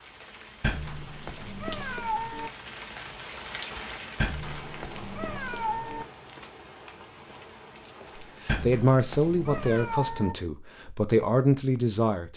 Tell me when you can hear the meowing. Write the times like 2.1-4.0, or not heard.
0.6-2.5, 4.2-6.0, 8.4-10.3.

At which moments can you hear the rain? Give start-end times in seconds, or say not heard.
0.0-8.6.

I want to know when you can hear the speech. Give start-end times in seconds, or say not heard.
8.4-12.3.